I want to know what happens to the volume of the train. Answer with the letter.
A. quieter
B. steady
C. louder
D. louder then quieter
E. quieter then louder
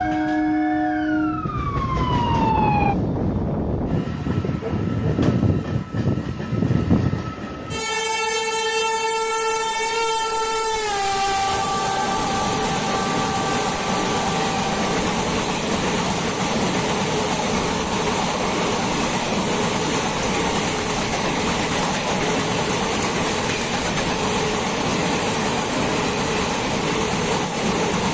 B.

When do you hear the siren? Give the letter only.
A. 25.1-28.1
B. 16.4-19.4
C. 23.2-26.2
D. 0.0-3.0
D.